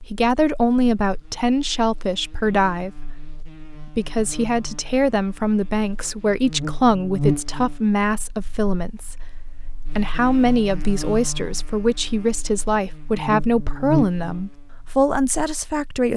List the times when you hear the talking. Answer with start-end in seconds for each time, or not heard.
0.0-3.2, 3.8-16.1.